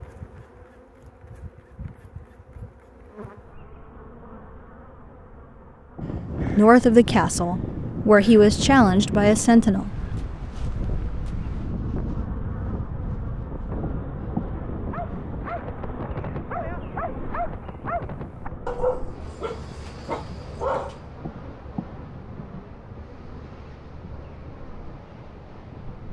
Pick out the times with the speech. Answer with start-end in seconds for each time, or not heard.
6.5-9.9.